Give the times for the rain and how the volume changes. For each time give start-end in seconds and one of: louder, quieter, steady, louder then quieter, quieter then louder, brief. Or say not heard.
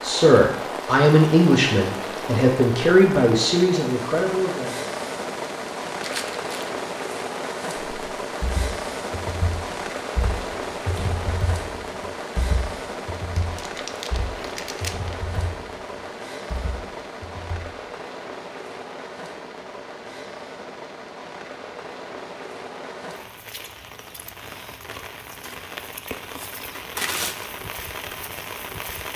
0.0-29.1 quieter.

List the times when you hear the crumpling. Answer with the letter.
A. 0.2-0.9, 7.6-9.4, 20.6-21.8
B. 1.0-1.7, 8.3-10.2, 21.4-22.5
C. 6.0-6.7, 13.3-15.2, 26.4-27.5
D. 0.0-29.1
C.